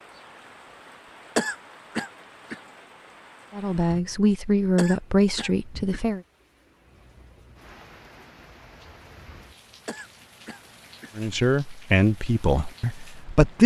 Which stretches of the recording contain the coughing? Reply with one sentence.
You can hear the coughing from 1.4 to 2.5 s, from 4.8 to 6.0 s and from 9.8 to 11.1 s.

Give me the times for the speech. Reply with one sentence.
You can hear the speech from 3.5 to 6.2 s and from 11.2 to 13.6 s.